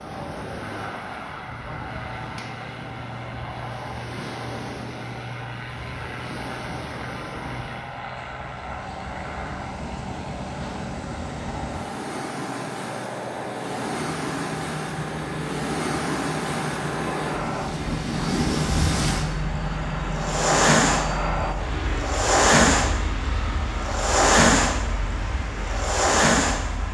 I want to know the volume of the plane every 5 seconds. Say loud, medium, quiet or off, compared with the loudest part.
medium, medium, medium, loud, loud, medium.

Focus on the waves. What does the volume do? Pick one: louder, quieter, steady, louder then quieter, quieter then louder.
louder.